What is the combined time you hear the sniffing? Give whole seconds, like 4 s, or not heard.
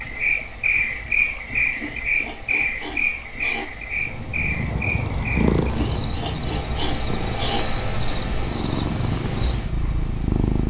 4 s.